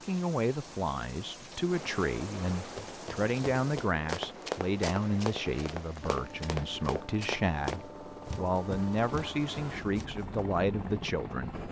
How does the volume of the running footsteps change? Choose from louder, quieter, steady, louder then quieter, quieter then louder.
quieter.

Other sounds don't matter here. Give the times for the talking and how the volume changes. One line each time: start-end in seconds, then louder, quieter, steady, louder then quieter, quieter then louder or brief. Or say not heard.
0.1-11.6 steady.